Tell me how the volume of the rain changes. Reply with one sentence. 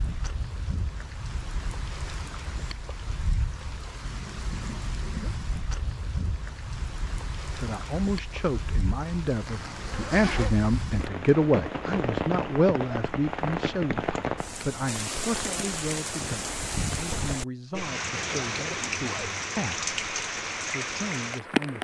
The volume of the rain goes up.